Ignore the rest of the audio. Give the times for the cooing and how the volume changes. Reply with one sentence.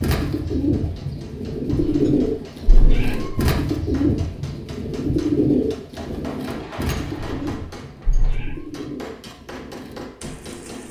The cooing can be heard from 0.0 to 10.8 s, getting quieter.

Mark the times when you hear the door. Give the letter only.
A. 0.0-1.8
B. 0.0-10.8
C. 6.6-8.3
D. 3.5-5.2
C.